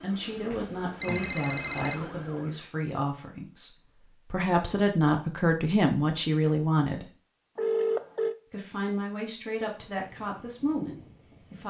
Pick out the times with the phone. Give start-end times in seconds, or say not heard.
0.5-2.0, 7.5-8.3.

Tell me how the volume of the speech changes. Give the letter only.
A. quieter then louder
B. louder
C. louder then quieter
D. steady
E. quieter
C.